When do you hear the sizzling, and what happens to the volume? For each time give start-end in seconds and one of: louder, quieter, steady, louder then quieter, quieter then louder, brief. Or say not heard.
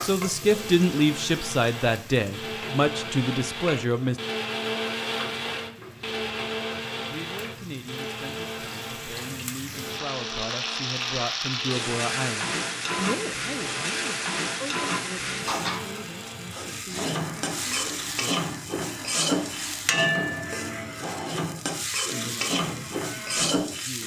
0.0-24.0 louder.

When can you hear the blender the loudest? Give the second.
5 s.